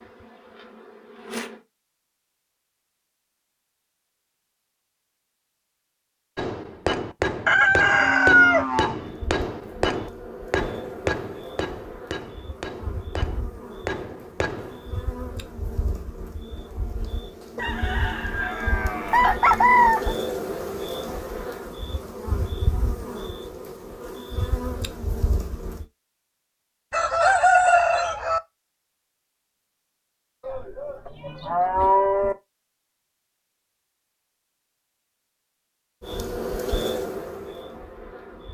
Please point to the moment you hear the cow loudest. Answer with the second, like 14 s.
32 s.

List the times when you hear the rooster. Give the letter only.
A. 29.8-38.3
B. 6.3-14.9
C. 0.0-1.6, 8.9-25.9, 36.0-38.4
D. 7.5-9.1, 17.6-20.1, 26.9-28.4
D.